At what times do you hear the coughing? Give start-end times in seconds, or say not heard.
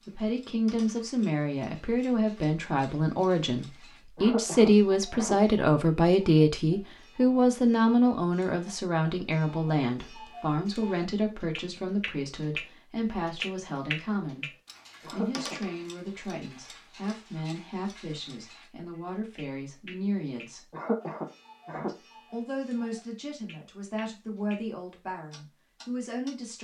4.2-5.4, 15.0-15.6, 20.7-21.9.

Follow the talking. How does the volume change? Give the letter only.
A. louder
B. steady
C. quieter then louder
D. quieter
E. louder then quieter
D.